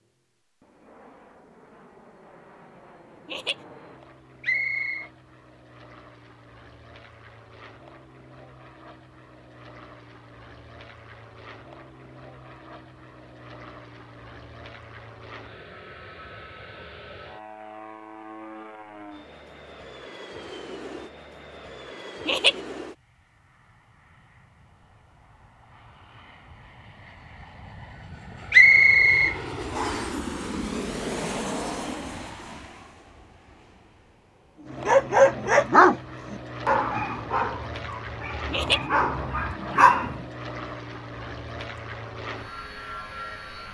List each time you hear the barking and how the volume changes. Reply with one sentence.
You can hear the barking from 34.9 to 40.2 s, getting quieter then louder.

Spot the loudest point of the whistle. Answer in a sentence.
The loudest moment of the whistle is at 29 seconds.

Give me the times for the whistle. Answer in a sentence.
The whistle can be heard from 4.4 to 5.1 s and from 28.5 to 30.1 s.